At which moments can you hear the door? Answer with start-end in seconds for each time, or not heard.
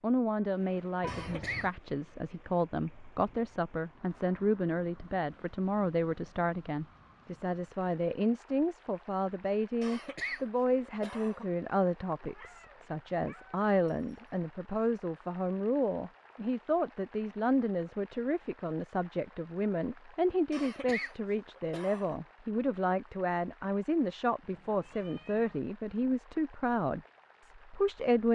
not heard.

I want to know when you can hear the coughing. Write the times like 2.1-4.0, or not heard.
1.1-1.7, 9.8-11.4, 20.5-22.1.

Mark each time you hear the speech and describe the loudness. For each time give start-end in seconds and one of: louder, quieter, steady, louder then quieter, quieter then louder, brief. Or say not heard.
0.0-28.3 steady.